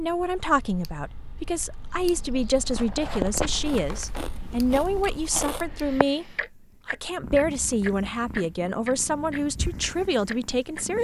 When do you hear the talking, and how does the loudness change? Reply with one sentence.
The talking can be heard from 0.0 to 10.9 s, at a steady volume.